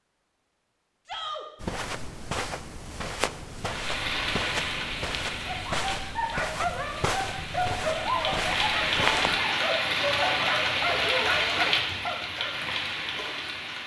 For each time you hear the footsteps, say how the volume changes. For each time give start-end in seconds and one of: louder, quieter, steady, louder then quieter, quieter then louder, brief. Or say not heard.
1.6-9.4 steady.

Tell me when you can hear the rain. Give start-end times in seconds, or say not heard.
3.6-13.8.